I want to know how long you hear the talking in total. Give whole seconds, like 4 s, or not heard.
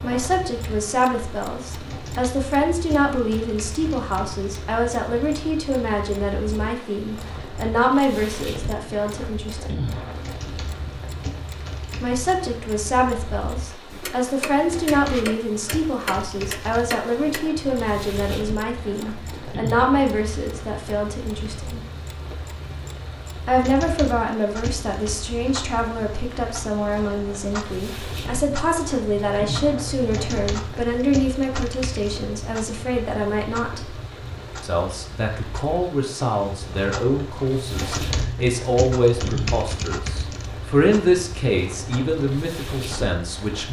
39 s.